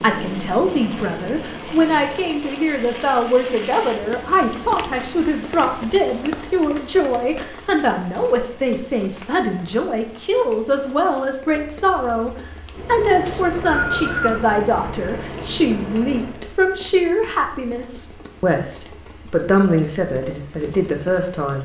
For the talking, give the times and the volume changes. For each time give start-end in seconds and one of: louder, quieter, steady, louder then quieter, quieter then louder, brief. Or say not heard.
0.0-21.6 steady.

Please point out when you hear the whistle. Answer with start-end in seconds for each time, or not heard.
13.2-14.4.